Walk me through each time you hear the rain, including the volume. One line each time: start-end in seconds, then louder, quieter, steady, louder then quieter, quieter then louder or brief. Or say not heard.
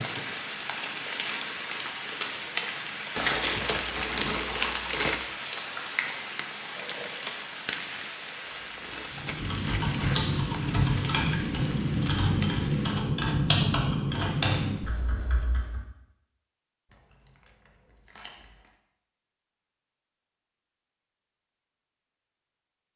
0.0-13.0 quieter.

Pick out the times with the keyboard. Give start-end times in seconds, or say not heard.
9.1-15.8.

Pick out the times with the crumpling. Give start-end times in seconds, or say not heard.
3.1-5.2, 8.4-10.2, 16.9-18.8.